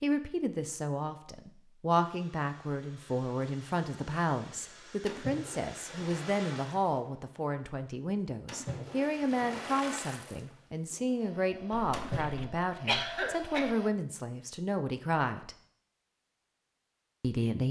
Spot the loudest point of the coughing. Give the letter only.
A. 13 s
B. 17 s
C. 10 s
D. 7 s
A.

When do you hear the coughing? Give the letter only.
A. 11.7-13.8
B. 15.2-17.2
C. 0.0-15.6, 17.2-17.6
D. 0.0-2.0
A.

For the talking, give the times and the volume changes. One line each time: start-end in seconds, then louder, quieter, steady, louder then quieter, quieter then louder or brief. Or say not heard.
0.0-15.6 steady
17.2-17.6 brief.